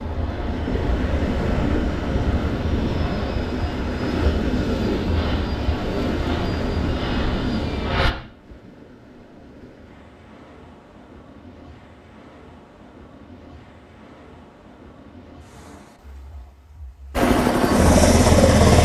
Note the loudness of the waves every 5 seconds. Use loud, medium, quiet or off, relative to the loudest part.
loud, loud, quiet, quiet.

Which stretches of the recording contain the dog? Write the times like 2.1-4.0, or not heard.
not heard.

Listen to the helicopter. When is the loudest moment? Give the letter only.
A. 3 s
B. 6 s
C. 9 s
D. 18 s
D.